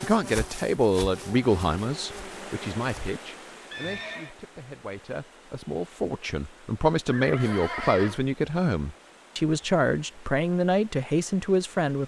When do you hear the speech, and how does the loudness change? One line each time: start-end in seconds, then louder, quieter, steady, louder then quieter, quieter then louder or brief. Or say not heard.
0.0-12.0 quieter then louder.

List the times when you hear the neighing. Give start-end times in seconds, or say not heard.
3.7-4.3, 7.0-8.2.